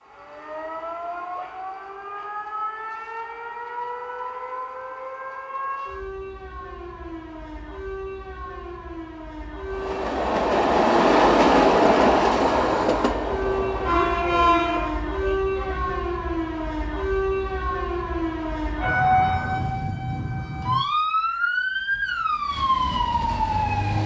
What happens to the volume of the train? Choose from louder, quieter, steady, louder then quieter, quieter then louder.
quieter.